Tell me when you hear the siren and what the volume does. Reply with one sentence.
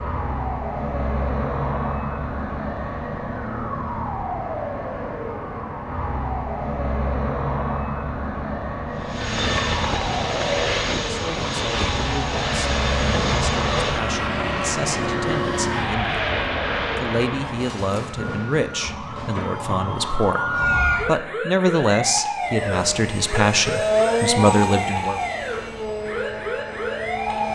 The siren can be heard from 0.0 to 27.5 s, at a steady volume.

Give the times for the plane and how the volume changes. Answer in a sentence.
The plane can be heard from 8.9 to 17.6 s, at a steady volume; and from 22.4 to 27.5 s, getting louder then quieter.